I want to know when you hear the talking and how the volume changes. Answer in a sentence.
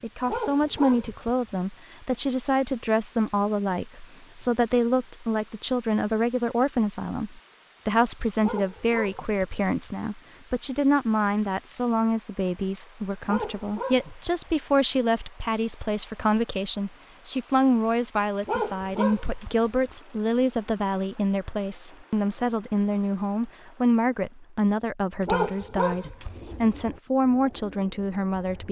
The talking can be heard from 0.0 to 28.6 s, at a steady volume.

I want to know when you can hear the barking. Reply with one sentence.
You can hear the barking from 0.2 to 1.5 s, from 8.4 to 9.7 s, from 13.2 to 14.5 s, from 18.4 to 19.7 s and from 25.2 to 26.5 s.